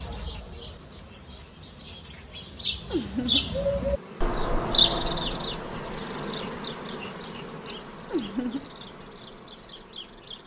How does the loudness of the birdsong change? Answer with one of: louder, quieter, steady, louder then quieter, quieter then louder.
quieter.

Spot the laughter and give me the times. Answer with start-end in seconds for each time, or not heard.
2.9-3.5, 8.1-8.7.